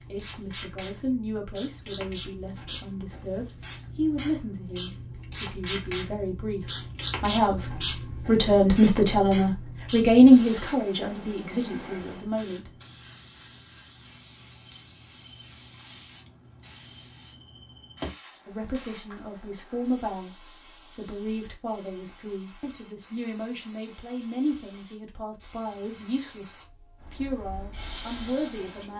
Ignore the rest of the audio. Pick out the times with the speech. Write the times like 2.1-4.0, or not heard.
0.1-12.7, 18.4-28.9.